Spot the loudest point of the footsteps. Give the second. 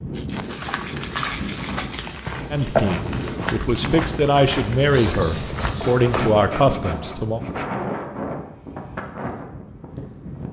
3 s.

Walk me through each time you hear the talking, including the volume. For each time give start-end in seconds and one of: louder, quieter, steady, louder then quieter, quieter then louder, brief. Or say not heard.
2.5-7.4 louder.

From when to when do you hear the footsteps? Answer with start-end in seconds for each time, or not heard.
0.3-6.4.